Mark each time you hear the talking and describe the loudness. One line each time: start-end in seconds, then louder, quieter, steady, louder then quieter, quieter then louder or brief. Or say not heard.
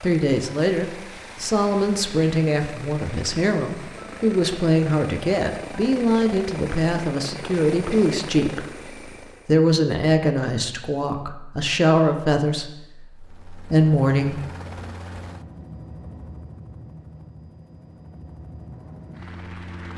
0.0-14.4 steady.